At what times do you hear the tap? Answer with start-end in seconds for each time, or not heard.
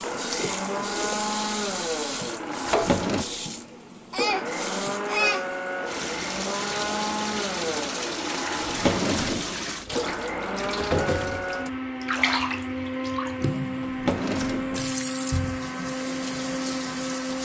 0.0-17.4.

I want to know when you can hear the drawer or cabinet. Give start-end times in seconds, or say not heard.
2.6-3.2, 8.6-9.6, 13.8-14.9.